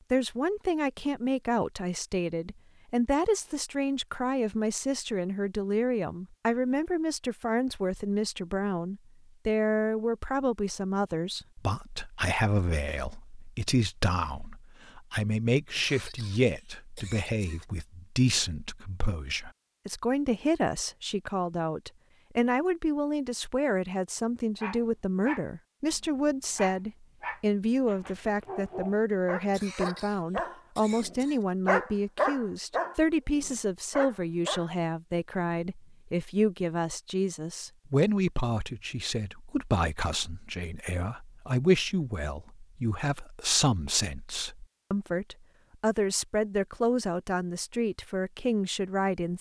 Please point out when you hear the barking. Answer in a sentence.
The barking can be heard from 24.6 to 34.7 s.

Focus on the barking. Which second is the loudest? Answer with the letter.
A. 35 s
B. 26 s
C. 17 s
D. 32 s
D.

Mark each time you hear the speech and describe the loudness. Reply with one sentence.
The speech can be heard from 0.1 to 49.3 s, at a steady volume.